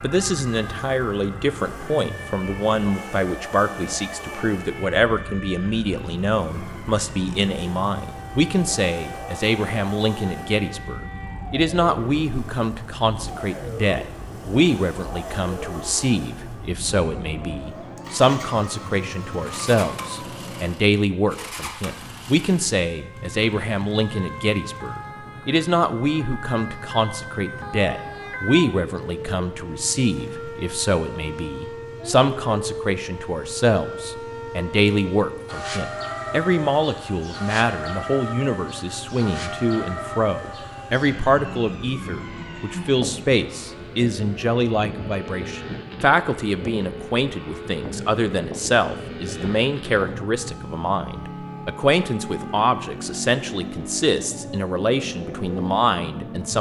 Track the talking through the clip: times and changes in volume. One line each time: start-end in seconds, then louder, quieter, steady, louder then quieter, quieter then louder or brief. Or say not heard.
0.0-56.5 steady.